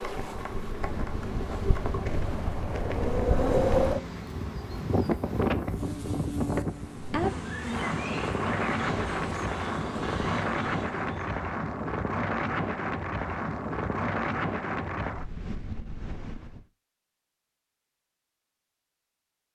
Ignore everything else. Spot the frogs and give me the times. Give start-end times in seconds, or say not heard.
not heard.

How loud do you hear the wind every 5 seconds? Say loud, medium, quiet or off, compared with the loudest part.
loud, loud, loud, medium.